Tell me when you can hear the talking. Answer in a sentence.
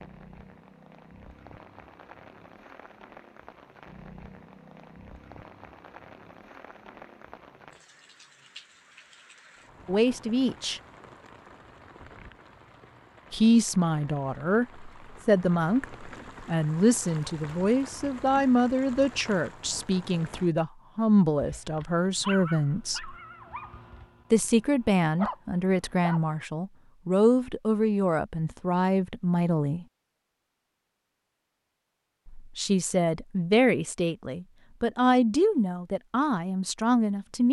The talking can be heard from 9.8 to 10.8 s, from 13.3 to 23.1 s, from 24.3 to 29.9 s and from 32.2 to 37.4 s.